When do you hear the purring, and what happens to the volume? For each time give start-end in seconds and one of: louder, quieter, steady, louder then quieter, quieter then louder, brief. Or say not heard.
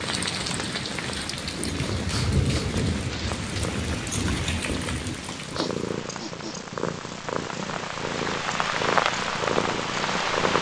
0.0-10.5 louder.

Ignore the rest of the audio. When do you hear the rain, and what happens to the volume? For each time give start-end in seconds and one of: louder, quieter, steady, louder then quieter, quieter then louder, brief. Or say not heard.
0.0-10.5 quieter then louder.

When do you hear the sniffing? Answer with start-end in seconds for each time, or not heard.
1.9-3.0, 5.5-6.6.